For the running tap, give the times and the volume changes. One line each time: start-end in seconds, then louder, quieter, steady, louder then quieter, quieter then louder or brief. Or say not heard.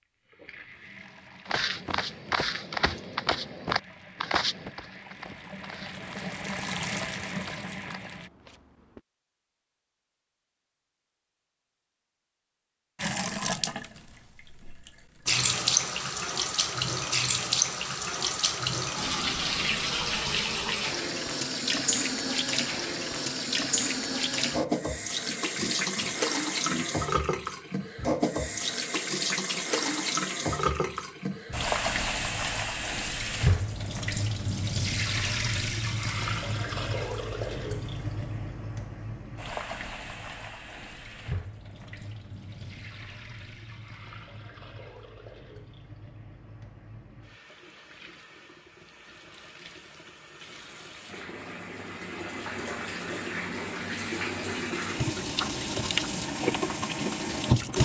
0.0-8.3 louder
12.9-57.8 quieter then louder.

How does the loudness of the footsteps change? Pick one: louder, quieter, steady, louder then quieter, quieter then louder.
quieter.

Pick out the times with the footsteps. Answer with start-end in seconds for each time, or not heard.
1.4-9.0.